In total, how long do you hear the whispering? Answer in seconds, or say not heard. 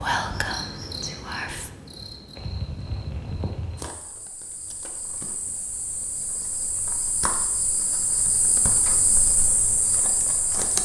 2 s.